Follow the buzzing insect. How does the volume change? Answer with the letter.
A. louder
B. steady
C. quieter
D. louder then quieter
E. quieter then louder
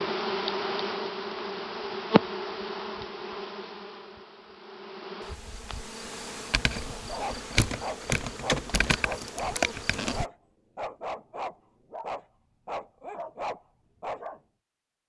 E.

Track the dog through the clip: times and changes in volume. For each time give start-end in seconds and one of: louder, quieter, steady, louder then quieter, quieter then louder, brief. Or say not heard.
6.9-14.4 steady.